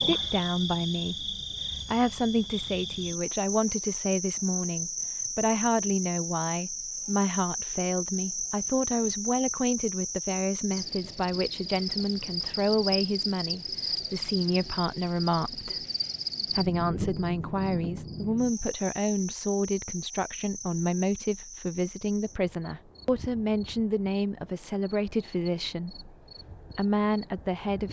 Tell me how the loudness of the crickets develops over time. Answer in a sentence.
The volume of the crickets goes down.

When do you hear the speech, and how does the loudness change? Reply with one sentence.
You can hear the speech from 0.0 to 15.8 s, at a steady volume; from 16.5 to 26.1 s, at a steady volume; and briefly from 26.8 to 27.8 s.